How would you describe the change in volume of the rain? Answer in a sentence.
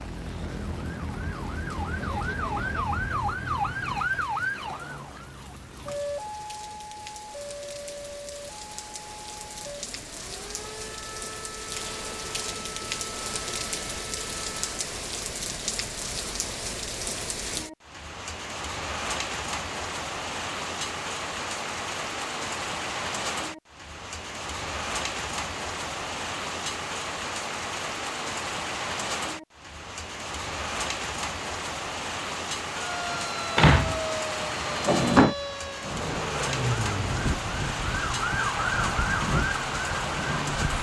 The volume of the rain goes up.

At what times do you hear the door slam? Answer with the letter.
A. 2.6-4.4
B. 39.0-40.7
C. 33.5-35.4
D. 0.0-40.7
C.